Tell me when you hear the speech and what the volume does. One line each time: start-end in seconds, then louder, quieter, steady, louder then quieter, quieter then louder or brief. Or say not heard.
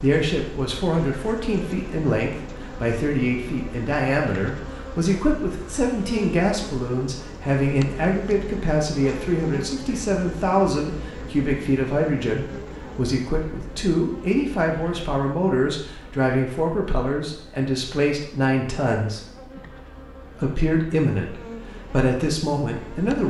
0.0-19.2 steady
20.4-23.2 brief.